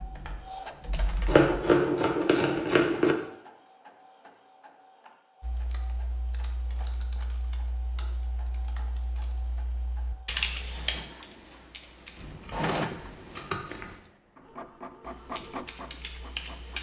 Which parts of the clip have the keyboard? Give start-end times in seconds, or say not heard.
0.0-1.5, 5.4-12.2, 15.0-16.7.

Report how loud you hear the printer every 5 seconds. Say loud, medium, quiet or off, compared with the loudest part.
medium, quiet, loud, loud.